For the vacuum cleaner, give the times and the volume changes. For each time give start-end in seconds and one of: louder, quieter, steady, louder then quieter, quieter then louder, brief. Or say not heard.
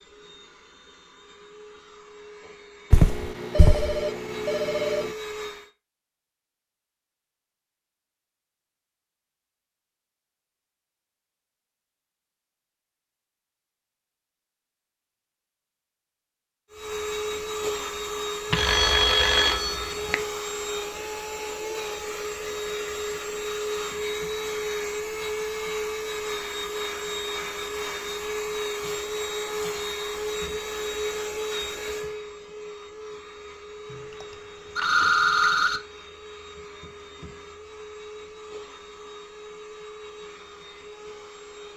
0.0-5.7 louder
16.7-41.7 quieter.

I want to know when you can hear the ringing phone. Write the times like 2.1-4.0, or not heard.
2.9-5.1, 18.5-20.1, 33.9-35.8.